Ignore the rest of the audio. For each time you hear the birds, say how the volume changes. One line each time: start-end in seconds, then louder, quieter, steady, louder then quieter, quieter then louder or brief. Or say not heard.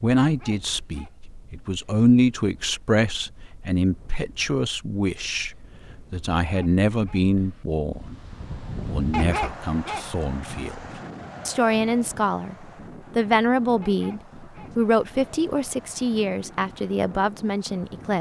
not heard.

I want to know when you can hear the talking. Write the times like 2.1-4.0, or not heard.
0.0-10.8, 11.4-18.1.